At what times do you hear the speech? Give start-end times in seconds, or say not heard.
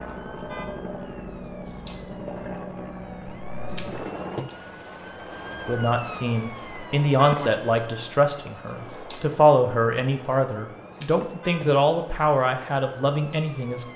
5.7-13.8.